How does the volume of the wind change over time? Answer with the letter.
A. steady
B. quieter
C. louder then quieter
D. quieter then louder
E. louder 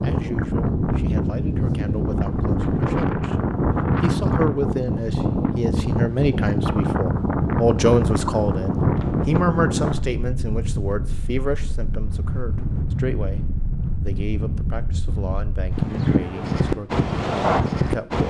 D.